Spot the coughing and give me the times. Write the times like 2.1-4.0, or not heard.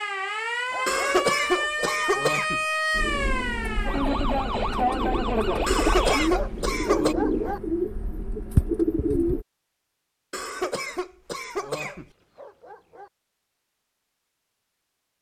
0.8-2.6, 5.7-7.2, 10.3-12.1.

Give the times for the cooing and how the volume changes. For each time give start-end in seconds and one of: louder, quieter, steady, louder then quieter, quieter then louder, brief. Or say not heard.
2.9-9.4 louder.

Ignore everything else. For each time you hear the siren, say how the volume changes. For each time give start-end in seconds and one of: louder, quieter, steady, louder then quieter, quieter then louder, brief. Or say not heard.
0.0-6.3 steady.